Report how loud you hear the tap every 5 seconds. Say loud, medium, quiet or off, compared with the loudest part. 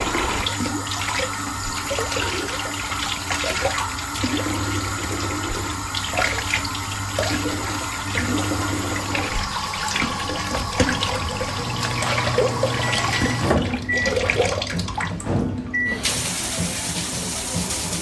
loud, loud, loud, medium.